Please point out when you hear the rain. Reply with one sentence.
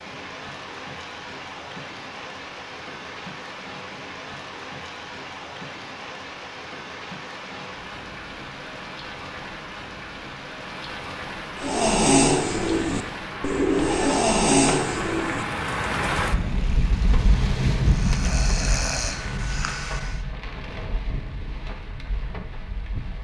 The rain can be heard from 0.0 to 23.2 s.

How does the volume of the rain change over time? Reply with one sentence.
The volume of the rain goes up, then down.